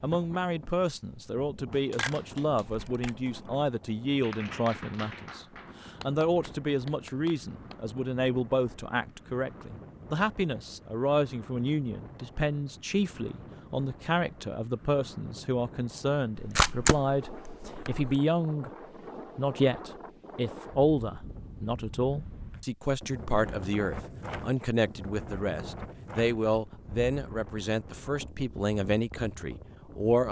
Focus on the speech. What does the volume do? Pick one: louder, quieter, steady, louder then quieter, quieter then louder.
steady.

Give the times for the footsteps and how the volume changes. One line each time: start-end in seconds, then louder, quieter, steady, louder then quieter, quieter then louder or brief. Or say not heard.
not heard.